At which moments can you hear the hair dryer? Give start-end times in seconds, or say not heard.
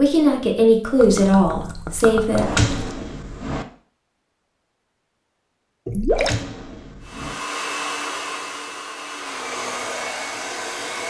7.0-11.0.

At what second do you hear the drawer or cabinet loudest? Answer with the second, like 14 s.
3 s.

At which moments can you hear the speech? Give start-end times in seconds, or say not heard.
0.0-2.5.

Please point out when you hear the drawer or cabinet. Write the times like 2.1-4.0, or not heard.
2.4-3.6, 6.0-7.3.